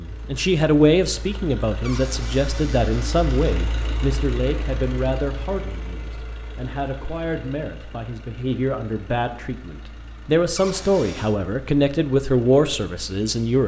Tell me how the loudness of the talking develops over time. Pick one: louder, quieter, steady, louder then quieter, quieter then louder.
quieter then louder.